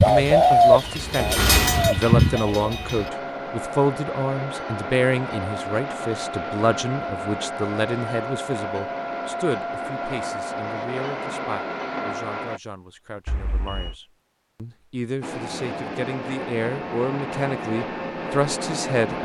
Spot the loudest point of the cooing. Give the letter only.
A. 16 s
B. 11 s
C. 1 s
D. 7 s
C.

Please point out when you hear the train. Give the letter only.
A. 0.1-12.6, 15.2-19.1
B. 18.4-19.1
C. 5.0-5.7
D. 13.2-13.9
A.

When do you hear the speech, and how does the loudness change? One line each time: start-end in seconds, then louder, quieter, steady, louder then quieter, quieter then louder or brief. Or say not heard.
0.0-19.1 quieter then louder.